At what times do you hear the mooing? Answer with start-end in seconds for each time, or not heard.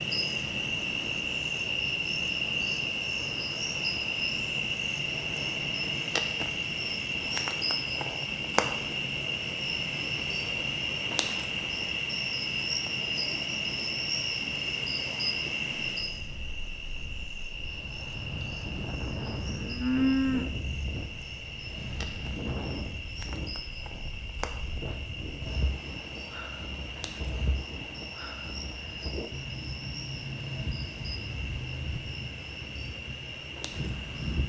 19.2-20.4.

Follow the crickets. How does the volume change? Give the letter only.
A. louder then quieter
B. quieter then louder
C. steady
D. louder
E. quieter
E.